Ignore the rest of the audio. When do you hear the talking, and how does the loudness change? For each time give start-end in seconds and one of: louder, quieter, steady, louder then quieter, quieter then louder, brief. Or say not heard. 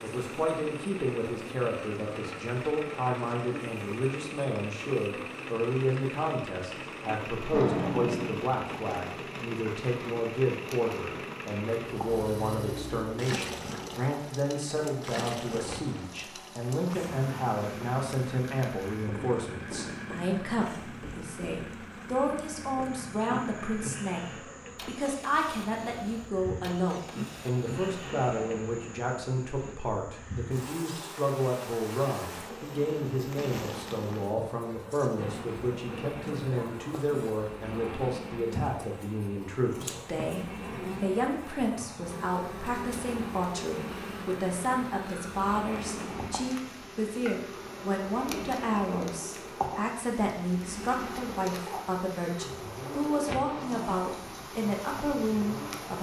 0.0-55.9 steady.